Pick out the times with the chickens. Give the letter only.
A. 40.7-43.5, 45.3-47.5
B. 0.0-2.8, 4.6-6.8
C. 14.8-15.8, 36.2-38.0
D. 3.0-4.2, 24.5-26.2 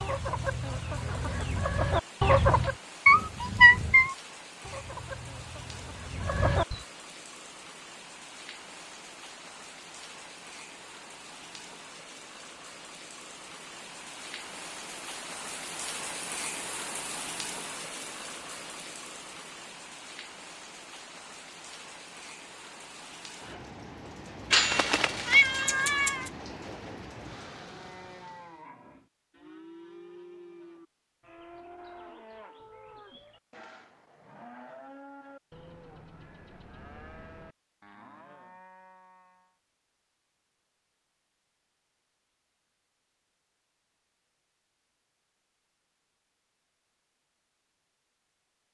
B.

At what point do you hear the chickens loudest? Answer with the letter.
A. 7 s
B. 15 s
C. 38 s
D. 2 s
D.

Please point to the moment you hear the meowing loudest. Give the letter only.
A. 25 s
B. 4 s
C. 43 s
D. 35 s
B.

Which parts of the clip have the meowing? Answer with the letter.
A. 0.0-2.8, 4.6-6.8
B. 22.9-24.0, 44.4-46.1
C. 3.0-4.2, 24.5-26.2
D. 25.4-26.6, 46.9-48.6
C.